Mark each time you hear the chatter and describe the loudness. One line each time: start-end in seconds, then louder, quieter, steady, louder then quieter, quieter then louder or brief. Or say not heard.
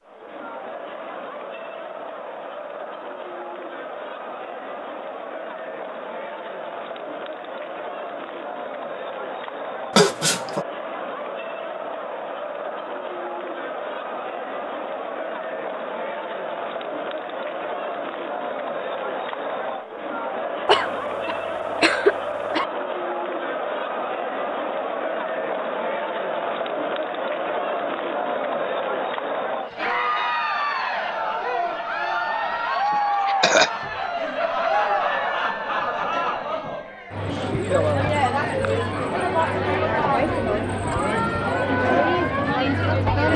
0.0-43.3 louder.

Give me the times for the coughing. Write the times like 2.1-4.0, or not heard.
9.9-10.7, 20.6-22.6, 32.9-33.7.